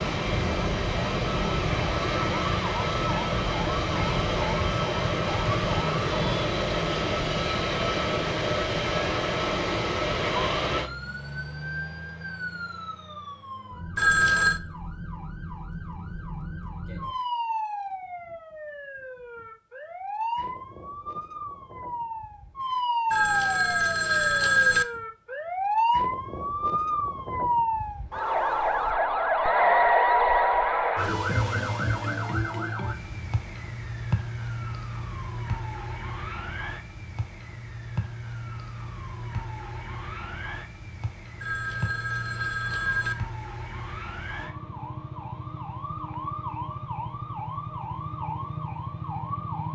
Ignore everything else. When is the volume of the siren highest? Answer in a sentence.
The volume of the siren peaks at 30 seconds.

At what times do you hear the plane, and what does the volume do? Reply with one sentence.
The plane can be heard from 0.0 to 10.9 s, at a steady volume.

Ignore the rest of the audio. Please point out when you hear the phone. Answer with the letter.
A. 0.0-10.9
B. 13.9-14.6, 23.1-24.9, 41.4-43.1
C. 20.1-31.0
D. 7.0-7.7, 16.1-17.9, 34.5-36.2
B.